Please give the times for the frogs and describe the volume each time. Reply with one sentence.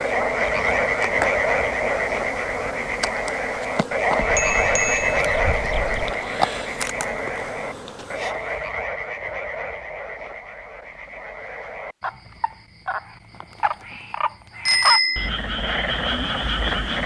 The frogs can be heard from 0.0 to 17.0 s, getting quieter then louder.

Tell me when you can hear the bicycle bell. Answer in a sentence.
You can hear the bicycle bell from 4.2 to 6.1 s and from 14.7 to 15.3 s.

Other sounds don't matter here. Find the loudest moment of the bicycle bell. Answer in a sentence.
The volume of the bicycle bell peaks at 15 seconds.